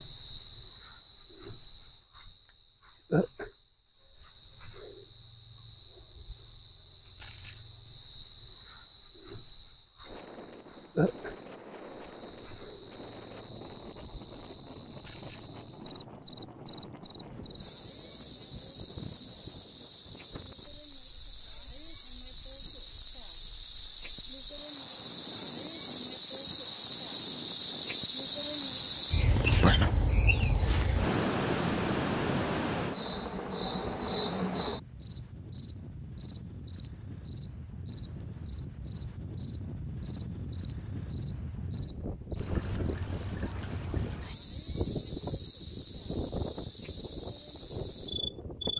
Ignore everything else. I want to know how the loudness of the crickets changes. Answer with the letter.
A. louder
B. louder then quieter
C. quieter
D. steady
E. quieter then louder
B.